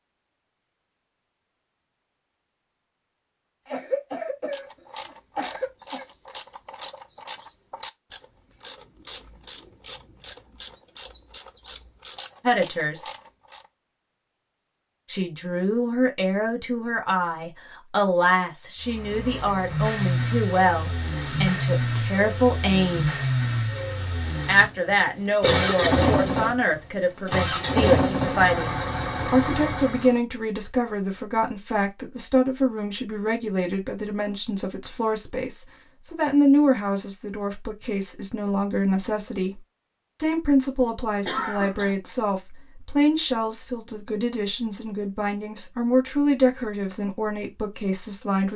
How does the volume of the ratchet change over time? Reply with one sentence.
The volume of the ratchet stays about the same.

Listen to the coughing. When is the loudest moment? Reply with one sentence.
The loudest moment of the coughing is at 26 seconds.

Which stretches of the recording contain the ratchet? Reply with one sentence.
You can hear the ratchet from 4.5 to 13.7 s.